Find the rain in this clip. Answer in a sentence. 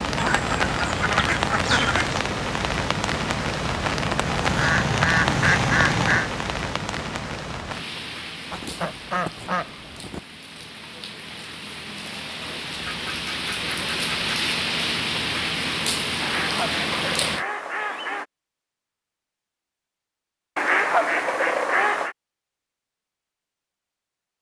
The rain can be heard from 0.0 to 17.4 s.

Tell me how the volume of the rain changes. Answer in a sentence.
The volume of the rain goes down, then up.